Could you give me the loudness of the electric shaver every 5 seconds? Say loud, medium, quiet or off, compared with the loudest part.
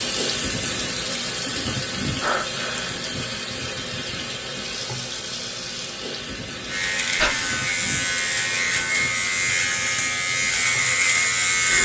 off, loud, loud.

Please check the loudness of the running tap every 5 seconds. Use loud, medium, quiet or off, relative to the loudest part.
loud, medium, medium.